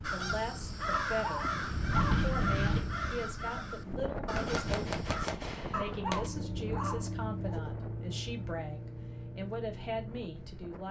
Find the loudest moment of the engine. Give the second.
7 s.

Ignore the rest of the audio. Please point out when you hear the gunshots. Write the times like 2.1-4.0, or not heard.
4.3-6.3.